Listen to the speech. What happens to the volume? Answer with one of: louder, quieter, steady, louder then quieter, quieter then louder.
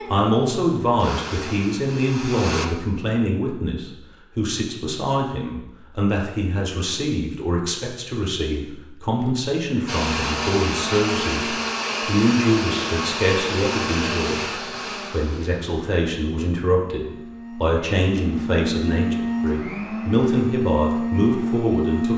steady.